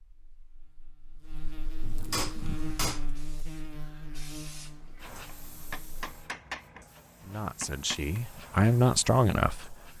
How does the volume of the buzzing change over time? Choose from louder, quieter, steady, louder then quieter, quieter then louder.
louder then quieter.